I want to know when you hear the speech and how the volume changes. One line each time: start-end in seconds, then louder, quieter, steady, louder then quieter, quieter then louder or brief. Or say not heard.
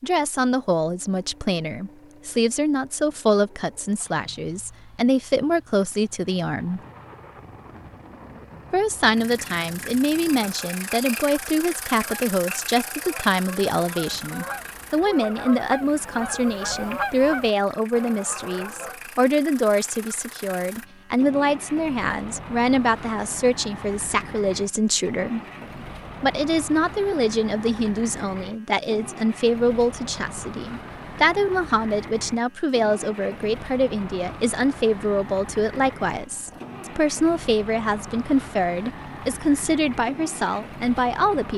0.0-6.8 steady
8.7-25.4 steady
26.2-41.5 steady.